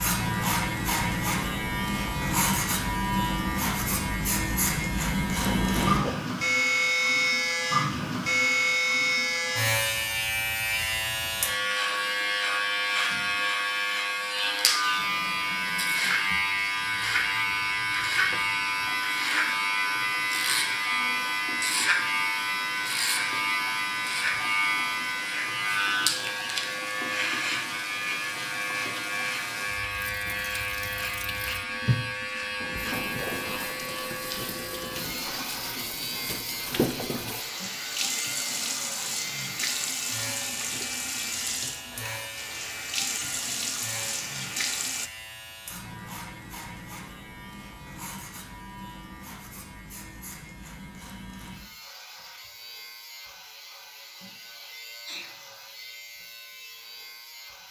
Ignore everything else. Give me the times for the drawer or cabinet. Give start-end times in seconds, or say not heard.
not heard.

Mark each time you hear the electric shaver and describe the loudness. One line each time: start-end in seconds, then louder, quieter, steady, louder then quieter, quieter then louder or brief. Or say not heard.
0.0-57.6 quieter.